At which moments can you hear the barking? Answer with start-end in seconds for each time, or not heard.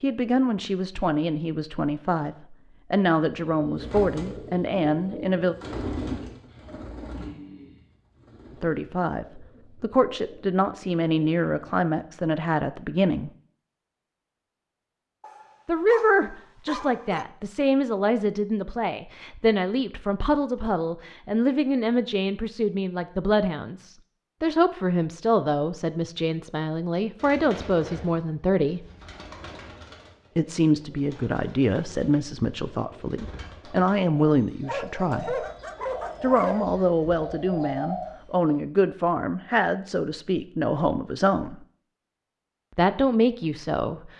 15.2-17.2, 34.6-36.6.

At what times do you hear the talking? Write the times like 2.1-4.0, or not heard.
0.0-5.5, 8.6-13.3, 15.7-28.9, 30.4-35.5, 36.2-41.6, 42.8-44.1.